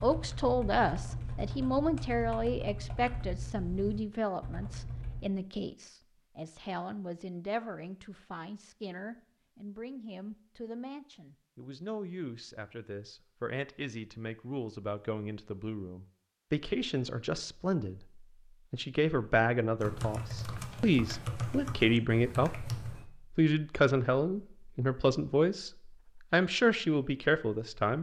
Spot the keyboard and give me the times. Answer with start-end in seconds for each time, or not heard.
0.0-5.3, 19.8-23.1.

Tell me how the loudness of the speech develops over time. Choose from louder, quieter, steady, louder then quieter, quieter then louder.
quieter then louder.